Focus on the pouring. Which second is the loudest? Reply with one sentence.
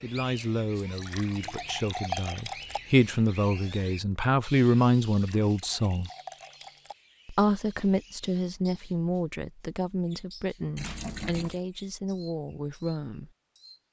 The volume of the pouring peaks at 2 seconds.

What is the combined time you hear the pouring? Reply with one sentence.
The pouring can be heard for 5 seconds in total.